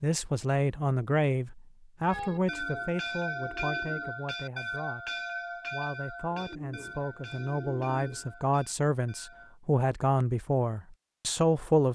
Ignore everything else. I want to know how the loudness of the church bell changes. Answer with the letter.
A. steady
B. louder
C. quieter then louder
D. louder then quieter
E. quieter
E.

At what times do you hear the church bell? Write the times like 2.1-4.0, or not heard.
2.0-9.6.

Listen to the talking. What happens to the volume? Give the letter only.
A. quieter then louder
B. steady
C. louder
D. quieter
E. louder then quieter
A.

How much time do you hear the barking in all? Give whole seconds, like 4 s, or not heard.
not heard.